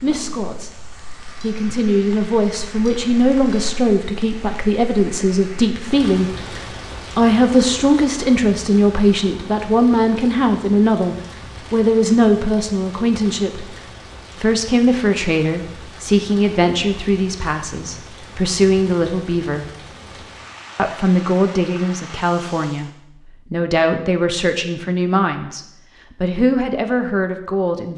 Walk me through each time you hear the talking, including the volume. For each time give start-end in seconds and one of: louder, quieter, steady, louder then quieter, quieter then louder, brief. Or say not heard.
0.0-6.3 louder
7.2-13.7 steady
14.4-19.6 quieter then louder
20.8-22.9 brief
23.5-27.9 quieter then louder.